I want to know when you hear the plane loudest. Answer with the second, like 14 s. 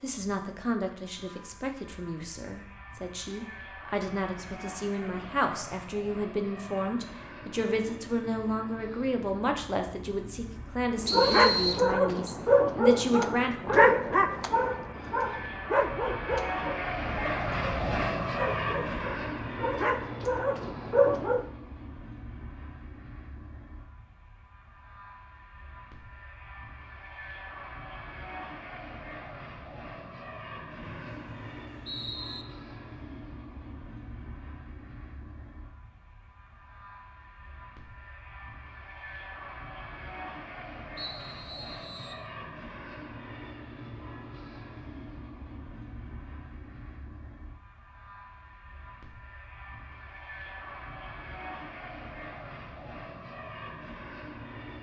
18 s.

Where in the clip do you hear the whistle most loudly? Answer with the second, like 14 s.
12 s.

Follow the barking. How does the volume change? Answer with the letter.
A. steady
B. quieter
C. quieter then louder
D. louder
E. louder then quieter
C.